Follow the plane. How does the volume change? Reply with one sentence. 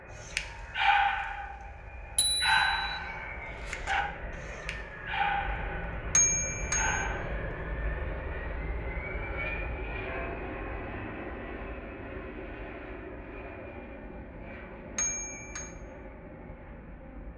The volume of the plane goes up, then down.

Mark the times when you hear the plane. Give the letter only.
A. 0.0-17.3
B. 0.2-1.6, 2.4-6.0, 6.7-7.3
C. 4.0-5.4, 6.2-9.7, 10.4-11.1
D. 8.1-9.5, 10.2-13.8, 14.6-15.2
A.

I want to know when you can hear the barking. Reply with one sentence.
The barking can be heard from 0.2 to 1.6 s, from 2.4 to 6.0 s and from 6.7 to 7.3 s.